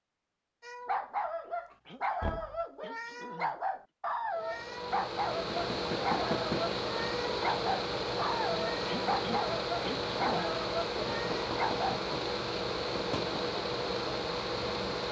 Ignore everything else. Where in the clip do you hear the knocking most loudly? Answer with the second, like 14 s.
6 s.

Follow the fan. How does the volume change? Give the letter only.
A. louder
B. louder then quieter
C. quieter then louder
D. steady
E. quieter
D.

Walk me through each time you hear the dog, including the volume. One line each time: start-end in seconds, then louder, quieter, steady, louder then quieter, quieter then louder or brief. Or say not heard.
0.6-12.1 steady.